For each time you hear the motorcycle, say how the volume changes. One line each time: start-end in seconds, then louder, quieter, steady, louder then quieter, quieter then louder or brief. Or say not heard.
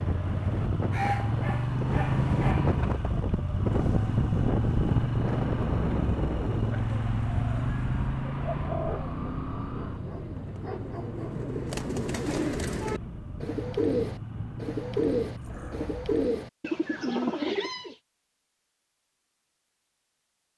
0.0-16.3 quieter.